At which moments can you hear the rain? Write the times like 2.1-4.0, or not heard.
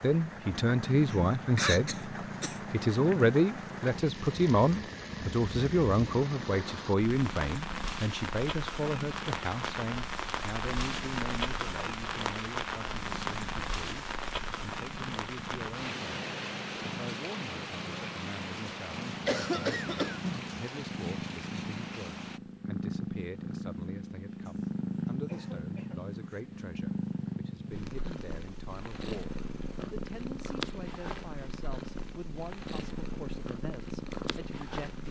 0.0-22.4.